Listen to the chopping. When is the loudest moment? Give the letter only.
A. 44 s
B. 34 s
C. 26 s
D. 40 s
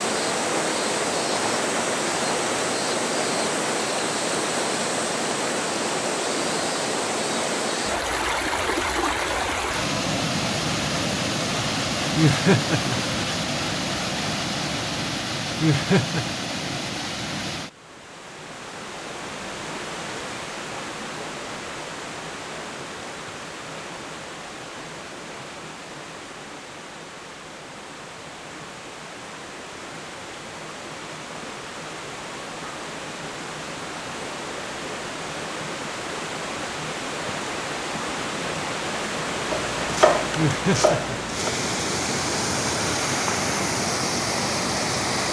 D.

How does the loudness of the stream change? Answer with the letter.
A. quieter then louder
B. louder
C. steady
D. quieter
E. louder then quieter
A.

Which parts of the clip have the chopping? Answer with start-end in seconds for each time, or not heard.
39.5-41.5.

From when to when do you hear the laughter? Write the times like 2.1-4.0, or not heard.
12.2-13.2, 15.6-16.2, 40.4-41.2.